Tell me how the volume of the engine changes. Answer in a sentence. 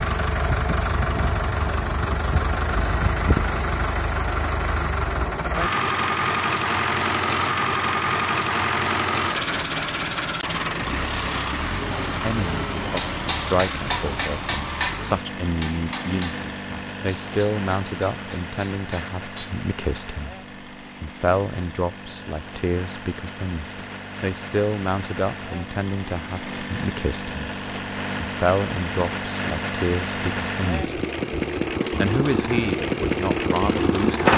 The loudness of the engine goes down, then up.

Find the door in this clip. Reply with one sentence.
The door can't be heard in this clip.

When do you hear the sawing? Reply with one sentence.
The sawing can't be heard in this clip.